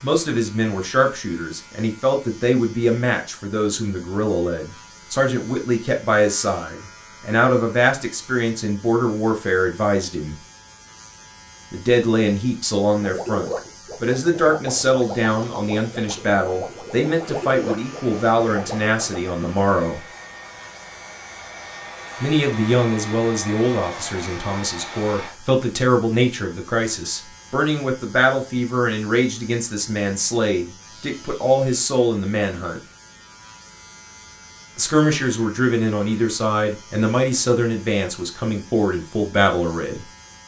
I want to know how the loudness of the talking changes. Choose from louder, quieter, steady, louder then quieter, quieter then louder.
steady.